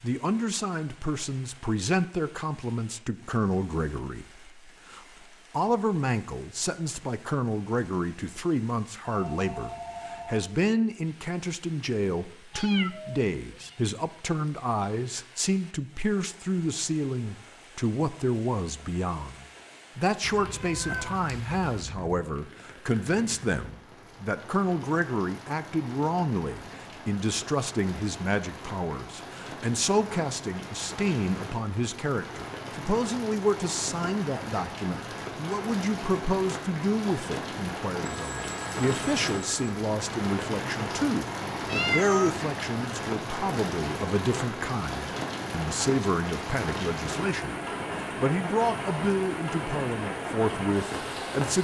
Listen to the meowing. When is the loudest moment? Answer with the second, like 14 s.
42 s.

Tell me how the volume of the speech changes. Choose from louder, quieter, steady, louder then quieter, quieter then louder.
steady.